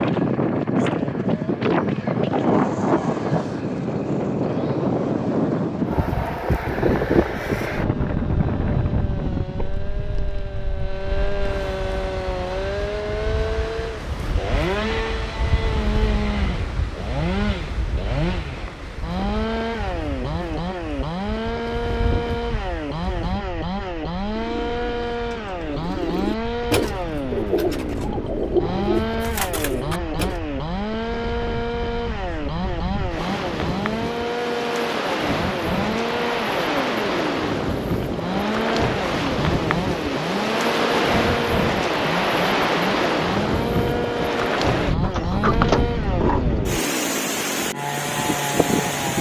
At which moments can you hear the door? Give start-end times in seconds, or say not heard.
45.0-46.8.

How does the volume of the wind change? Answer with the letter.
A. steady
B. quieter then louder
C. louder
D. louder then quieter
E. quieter
B.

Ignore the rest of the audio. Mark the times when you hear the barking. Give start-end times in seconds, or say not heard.
not heard.